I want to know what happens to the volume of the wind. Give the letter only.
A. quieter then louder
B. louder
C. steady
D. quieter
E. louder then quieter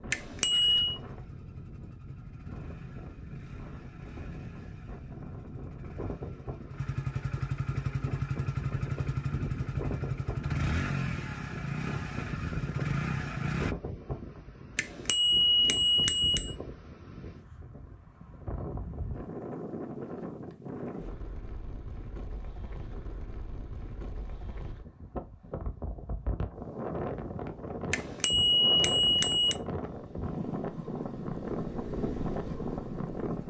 B.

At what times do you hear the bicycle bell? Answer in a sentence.
You can hear the bicycle bell from 0.1 to 1.0 s, from 14.8 to 16.6 s and from 27.9 to 29.6 s.